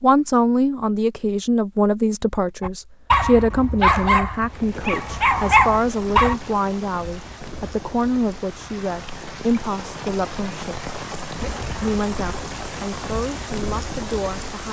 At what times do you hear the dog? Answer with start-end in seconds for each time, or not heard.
2.6-6.3.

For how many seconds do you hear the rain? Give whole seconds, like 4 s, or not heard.
10 s.